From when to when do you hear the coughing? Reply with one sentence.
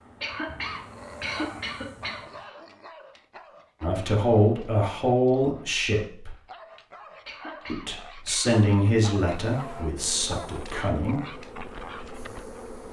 You can hear the coughing from 0.2 to 2.5 s and from 7.2 to 8.6 s.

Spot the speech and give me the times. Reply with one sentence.
The speech can be heard from 3.8 to 6.3 s and from 7.7 to 11.2 s.